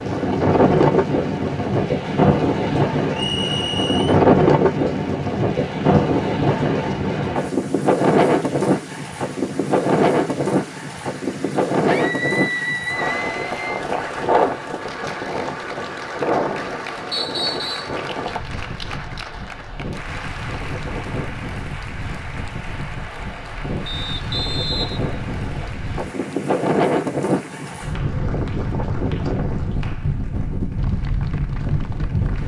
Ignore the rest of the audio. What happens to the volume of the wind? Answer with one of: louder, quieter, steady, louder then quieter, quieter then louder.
quieter then louder.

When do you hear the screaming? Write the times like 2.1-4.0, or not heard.
11.8-13.7.